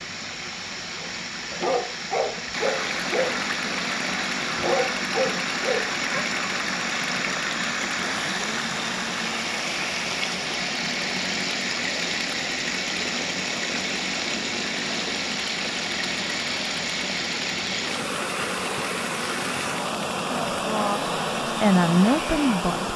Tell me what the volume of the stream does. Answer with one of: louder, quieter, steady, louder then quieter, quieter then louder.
steady.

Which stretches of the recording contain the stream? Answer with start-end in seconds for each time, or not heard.
0.0-22.9.